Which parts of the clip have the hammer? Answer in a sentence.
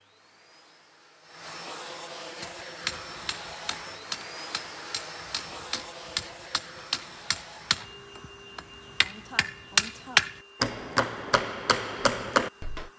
You can hear the hammer from 2.4 to 12.9 s.